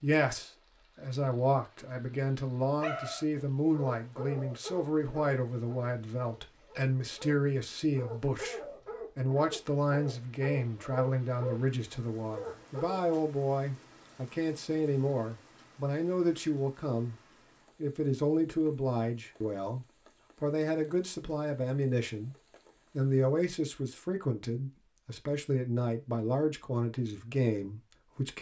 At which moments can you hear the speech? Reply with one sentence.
The speech can be heard from 0.0 to 22.4 s and from 22.9 to 28.3 s.